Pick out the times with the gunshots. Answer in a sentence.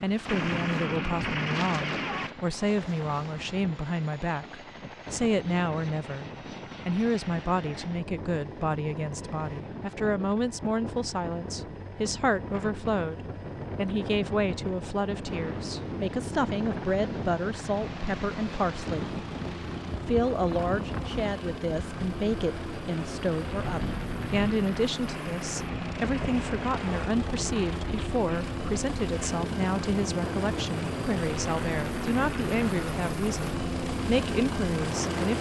The gunshots can be heard from 0.2 to 2.3 s and from 25.1 to 27.1 s.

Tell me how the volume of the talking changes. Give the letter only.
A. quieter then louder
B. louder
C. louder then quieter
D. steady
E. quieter
D.